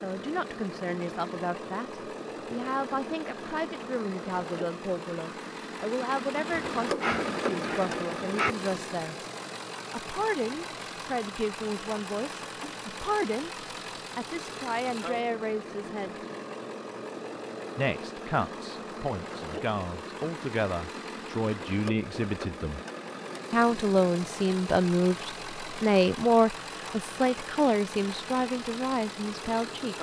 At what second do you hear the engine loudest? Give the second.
7 s.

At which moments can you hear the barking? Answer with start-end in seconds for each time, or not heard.
6.5-8.6.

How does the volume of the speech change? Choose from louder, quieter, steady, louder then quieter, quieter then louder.
louder.